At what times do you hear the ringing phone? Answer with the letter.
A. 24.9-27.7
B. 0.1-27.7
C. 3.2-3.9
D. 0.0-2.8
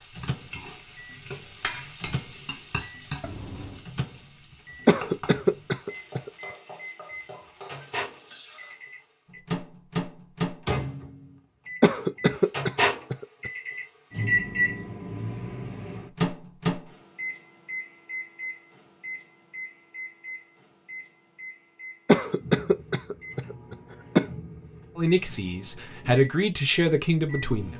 C.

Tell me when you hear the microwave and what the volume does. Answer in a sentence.
You can hear the microwave from 0.1 to 27.7 s, getting louder then quieter.